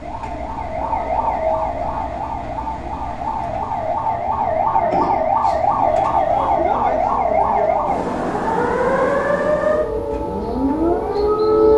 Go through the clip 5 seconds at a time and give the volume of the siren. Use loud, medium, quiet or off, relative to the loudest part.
medium, loud, loud.